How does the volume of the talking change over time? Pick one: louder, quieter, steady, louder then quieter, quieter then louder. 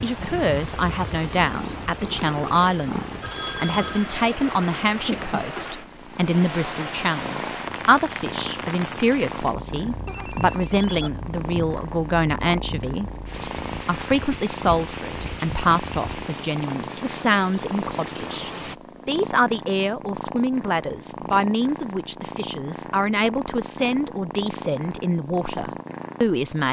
steady.